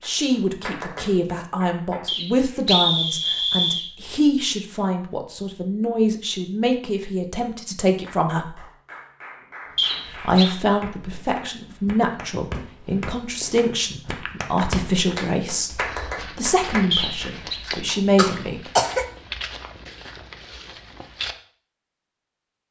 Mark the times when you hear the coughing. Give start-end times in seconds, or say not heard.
17.9-19.1.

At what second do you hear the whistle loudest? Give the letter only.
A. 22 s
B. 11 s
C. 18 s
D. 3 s
D.